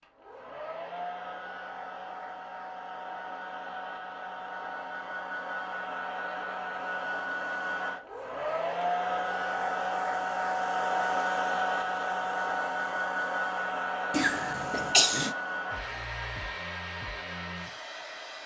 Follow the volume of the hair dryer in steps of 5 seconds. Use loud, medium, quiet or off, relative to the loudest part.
medium, loud, loud, medium.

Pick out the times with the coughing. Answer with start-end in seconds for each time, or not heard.
14.1-15.3.